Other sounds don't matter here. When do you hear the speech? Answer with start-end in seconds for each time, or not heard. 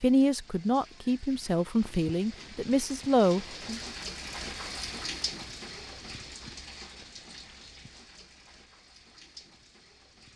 0.0-3.8.